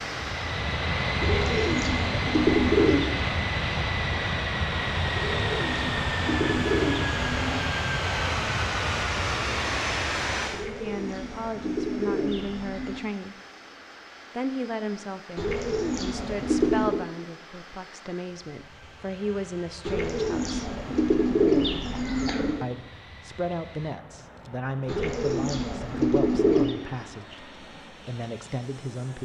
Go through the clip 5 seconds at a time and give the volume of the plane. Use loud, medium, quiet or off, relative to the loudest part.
loud, loud, medium, quiet, quiet, quiet.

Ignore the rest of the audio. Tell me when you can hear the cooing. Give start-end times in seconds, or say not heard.
1.2-3.1, 5.2-7.7, 10.5-13.0, 15.3-17.1, 19.9-22.6, 24.9-26.8.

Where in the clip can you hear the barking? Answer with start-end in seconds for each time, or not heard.
not heard.